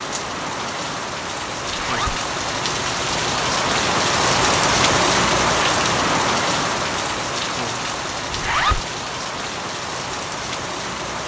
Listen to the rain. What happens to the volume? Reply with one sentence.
The volume of the rain goes up, then down.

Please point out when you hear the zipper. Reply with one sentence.
You can hear the zipper from 1.6 to 2.2 s and from 8.2 to 8.8 s.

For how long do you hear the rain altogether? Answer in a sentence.
The rain can be heard for 11 seconds in total.